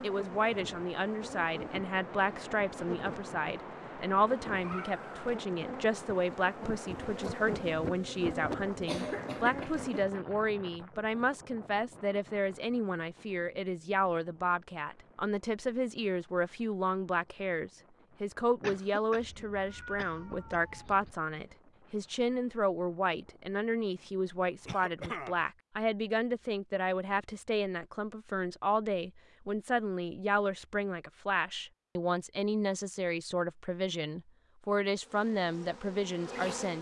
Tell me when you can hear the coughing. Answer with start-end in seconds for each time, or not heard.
8.8-9.8, 18.6-20.6, 24.6-25.4.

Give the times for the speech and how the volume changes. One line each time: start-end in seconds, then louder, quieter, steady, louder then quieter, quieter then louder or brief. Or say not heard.
0.0-36.7 steady.